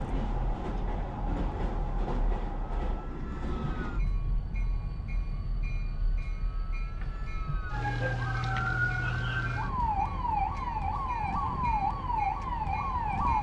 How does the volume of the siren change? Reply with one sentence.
The volume of the siren goes up.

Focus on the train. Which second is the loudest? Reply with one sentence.
The loudest moment of the train is at 2 seconds.